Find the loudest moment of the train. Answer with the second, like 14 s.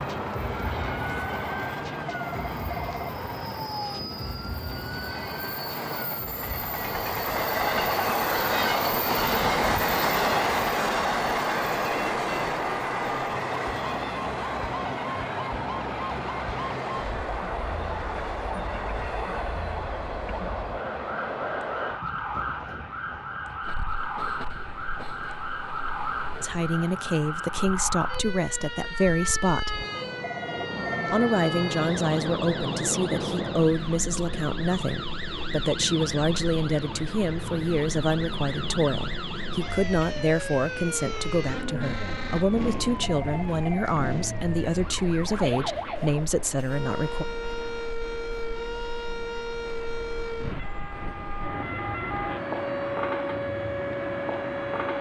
10 s.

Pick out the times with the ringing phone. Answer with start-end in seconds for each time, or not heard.
2.0-3.2, 30.2-31.1, 43.0-44.0.